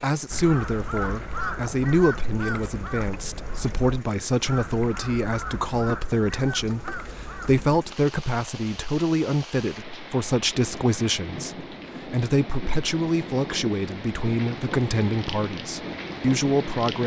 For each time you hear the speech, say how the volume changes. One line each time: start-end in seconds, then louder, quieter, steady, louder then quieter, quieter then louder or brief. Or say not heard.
0.0-17.0 steady.